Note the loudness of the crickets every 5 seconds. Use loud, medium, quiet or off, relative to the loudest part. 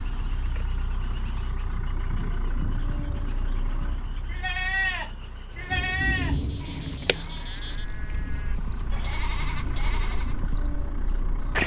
quiet, medium, loud.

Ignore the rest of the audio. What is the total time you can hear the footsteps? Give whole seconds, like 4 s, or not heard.
not heard.